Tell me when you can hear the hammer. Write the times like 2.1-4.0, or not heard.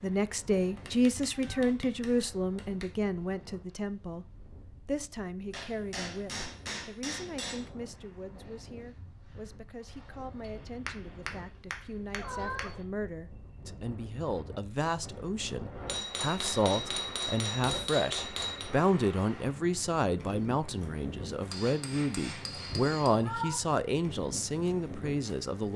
0.8-2.9, 5.5-7.7, 10.4-12.8, 15.8-18.7, 21.5-23.1.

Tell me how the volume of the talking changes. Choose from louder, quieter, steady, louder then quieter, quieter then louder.
quieter then louder.